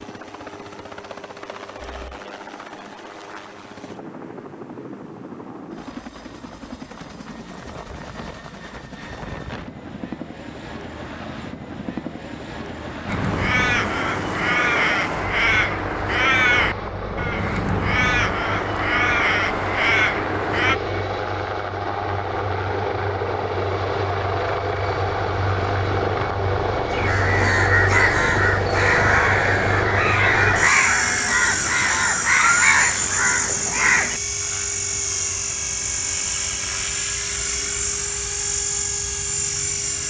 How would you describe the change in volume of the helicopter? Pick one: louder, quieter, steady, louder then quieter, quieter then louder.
louder.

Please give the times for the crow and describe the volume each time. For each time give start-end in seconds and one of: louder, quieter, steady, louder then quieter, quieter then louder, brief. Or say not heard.
13.1-20.8 steady
26.9-34.2 steady.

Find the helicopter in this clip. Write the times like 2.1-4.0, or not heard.
0.0-40.0.